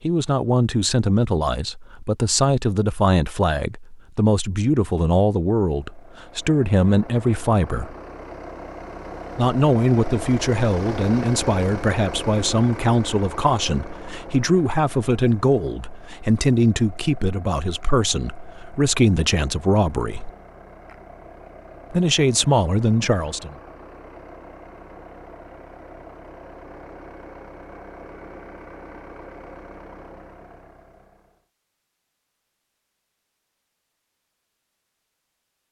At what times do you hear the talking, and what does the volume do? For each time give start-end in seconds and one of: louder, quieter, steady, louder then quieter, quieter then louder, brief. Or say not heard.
0.0-8.0 steady
9.3-20.3 steady
21.9-23.6 brief.